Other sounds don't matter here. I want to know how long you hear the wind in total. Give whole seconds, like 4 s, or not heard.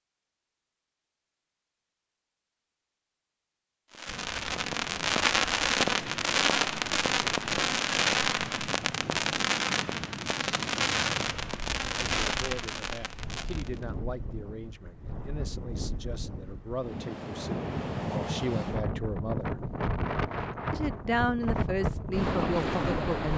19 s.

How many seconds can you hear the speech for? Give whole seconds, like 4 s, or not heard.
10 s.